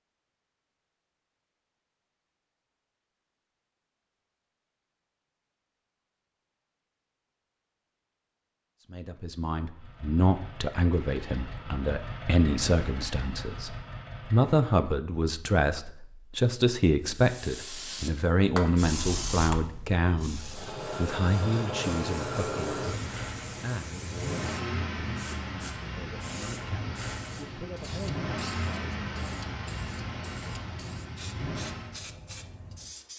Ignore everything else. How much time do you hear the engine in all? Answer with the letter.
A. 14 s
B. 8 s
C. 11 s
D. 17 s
D.